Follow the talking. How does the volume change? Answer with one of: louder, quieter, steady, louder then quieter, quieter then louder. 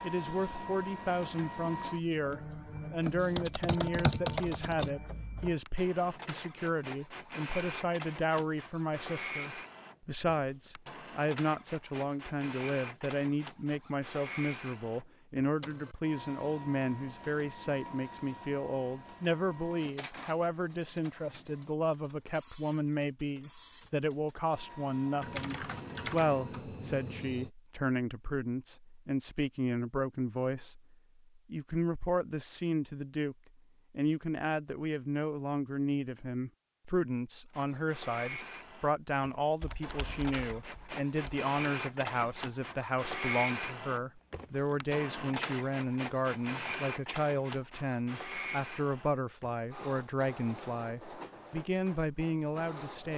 steady.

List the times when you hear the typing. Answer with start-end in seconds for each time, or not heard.
3.0-4.9, 25.2-27.5, 39.6-41.4.